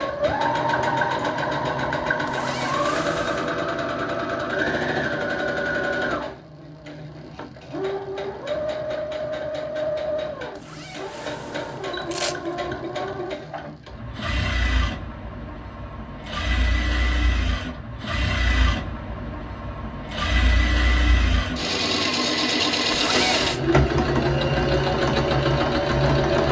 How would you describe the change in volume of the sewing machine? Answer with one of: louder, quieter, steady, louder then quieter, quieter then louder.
quieter then louder.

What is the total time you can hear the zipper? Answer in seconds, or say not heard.
4 s.